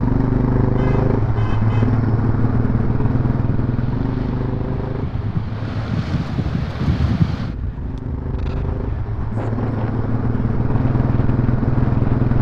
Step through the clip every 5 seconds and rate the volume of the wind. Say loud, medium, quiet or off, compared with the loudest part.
medium, loud, medium.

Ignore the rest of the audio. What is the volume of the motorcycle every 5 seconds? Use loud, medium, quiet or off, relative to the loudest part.
loud, medium, loud.